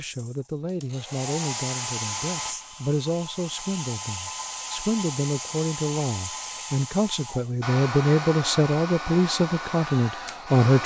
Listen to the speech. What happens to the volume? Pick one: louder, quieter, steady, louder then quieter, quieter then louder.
louder.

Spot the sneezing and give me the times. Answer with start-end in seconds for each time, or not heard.
not heard.